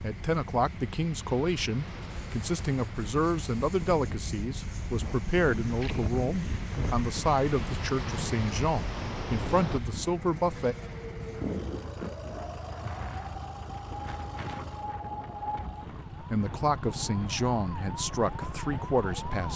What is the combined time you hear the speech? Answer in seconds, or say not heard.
14 s.